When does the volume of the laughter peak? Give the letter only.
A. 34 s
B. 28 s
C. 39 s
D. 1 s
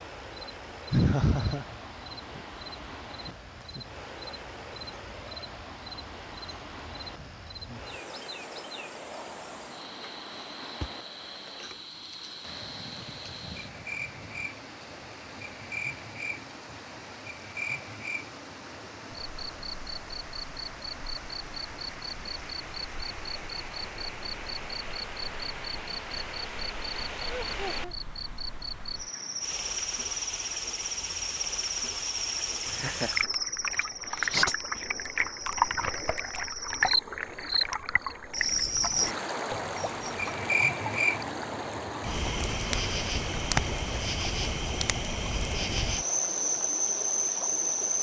D.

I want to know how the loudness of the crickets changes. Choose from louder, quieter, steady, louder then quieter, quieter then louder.
louder.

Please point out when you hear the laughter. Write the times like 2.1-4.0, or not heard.
0.9-1.6, 27.2-27.9, 32.6-33.2.